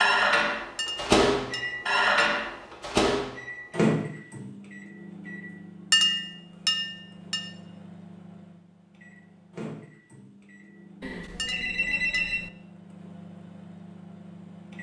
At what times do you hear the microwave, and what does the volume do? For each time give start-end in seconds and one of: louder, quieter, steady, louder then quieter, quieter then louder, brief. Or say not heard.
0.0-14.7 quieter.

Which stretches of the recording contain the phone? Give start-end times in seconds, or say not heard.
11.0-12.5.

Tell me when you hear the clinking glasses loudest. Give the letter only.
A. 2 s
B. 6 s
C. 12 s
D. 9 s
B.